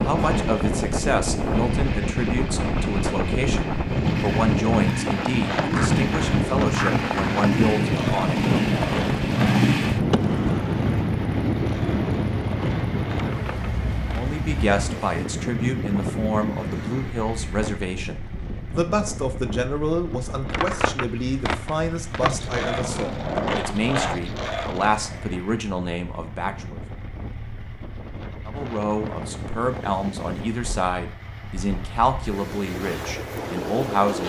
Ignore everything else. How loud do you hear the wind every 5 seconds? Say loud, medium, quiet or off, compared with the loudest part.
loud, loud, loud, medium, quiet, quiet, medium.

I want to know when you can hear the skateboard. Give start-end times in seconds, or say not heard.
5.3-14.4, 20.4-25.2.